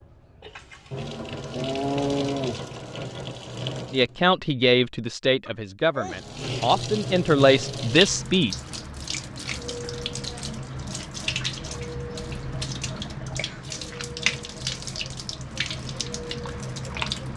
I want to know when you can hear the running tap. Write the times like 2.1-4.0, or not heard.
0.0-4.2, 6.0-17.3.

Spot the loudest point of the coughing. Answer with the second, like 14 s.
6 s.